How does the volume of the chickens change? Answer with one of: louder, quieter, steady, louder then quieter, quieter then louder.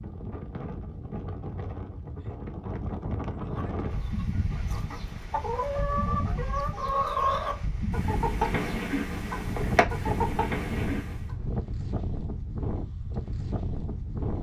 louder.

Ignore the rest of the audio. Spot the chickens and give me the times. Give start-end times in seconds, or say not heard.
3.5-11.3.